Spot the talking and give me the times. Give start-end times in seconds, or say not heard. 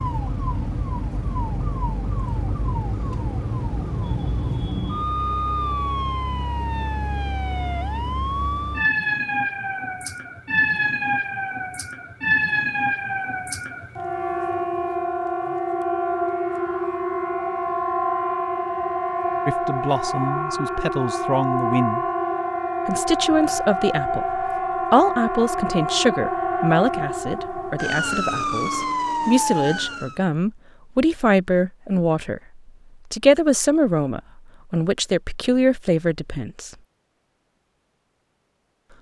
19.4-22.0, 22.9-36.7.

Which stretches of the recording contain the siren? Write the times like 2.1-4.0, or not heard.
0.0-30.2.